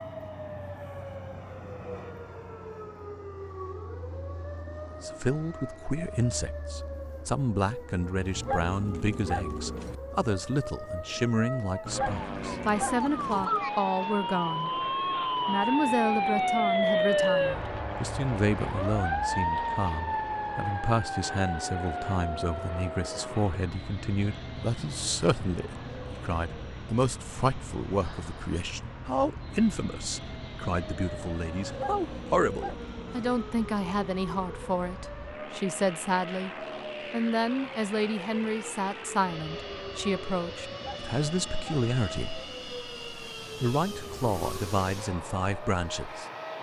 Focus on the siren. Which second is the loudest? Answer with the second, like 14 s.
17 s.